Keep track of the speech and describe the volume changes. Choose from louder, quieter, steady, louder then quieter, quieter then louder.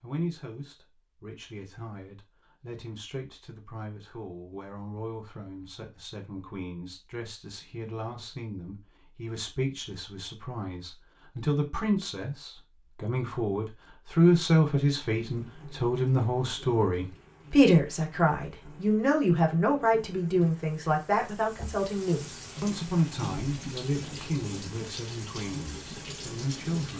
louder then quieter.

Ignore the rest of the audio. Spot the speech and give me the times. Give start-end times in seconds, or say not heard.
0.0-26.9.